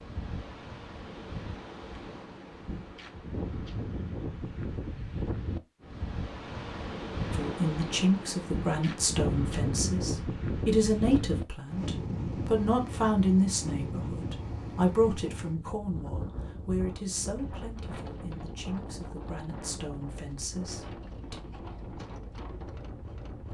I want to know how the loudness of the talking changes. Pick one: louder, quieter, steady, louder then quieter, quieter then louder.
quieter.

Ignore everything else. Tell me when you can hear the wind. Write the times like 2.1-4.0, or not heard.
0.0-23.4.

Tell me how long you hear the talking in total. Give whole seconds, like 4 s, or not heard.
14 s.